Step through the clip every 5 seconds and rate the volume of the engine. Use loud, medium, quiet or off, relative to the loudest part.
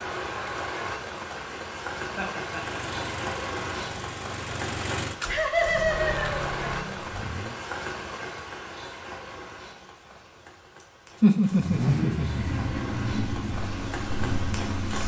medium, medium, loud.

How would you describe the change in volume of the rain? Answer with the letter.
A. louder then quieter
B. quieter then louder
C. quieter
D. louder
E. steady
B.